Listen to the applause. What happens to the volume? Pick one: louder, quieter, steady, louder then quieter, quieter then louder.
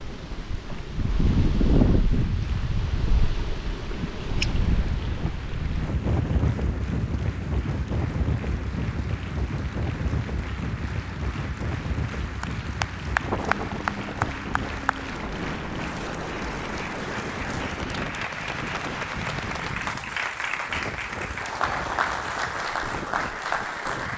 louder.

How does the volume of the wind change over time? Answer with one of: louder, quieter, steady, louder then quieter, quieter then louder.
quieter.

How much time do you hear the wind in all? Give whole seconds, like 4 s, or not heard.
24 s.